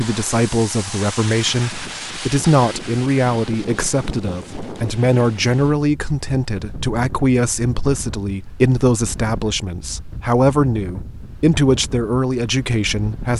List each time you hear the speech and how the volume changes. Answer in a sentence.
The speech can be heard from 0.0 to 13.3 s, at a steady volume.